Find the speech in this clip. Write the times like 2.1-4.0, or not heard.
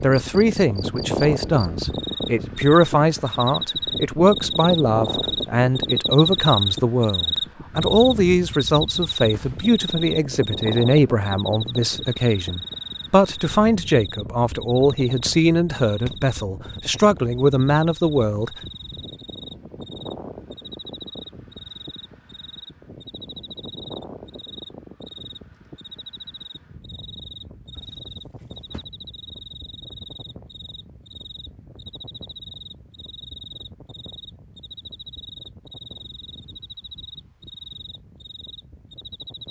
0.0-18.6.